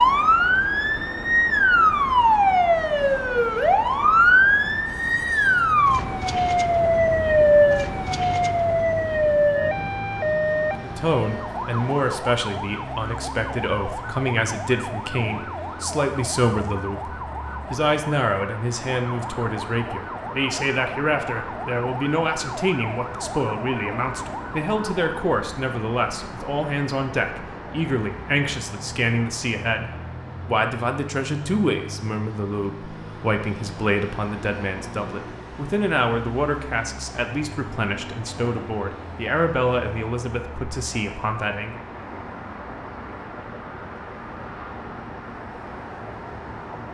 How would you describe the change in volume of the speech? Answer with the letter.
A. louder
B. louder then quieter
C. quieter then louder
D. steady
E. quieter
D.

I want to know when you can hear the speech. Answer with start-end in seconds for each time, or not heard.
10.8-41.8.